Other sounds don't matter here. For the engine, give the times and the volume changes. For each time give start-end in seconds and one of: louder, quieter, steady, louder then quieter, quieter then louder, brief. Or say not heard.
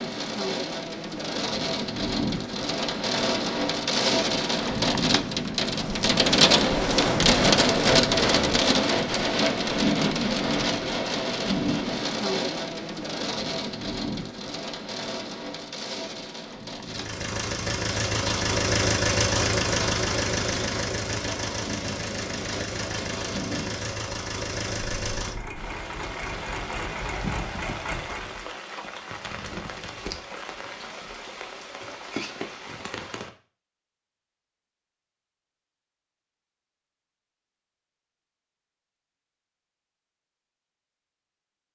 16.8-28.5 quieter.